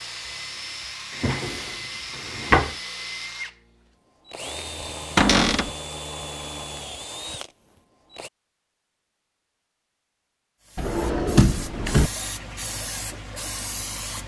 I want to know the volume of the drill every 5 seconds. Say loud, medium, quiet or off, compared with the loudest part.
loud, loud, off.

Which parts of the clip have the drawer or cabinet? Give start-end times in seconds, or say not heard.
1.1-2.8, 5.2-5.8, 10.8-12.1.